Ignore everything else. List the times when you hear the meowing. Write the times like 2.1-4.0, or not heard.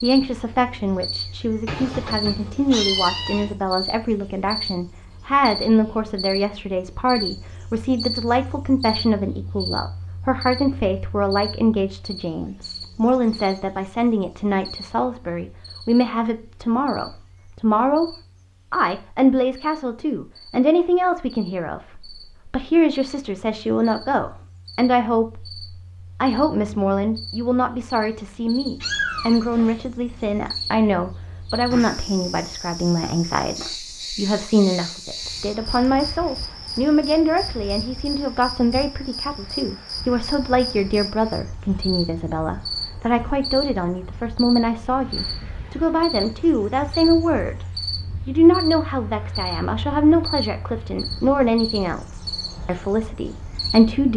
1.6-3.5, 28.8-29.8.